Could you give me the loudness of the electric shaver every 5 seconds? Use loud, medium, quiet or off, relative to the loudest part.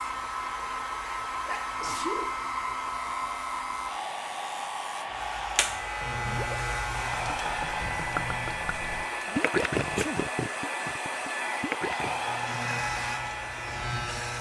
medium, loud, loud.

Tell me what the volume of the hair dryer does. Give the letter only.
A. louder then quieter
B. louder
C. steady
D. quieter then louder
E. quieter
C.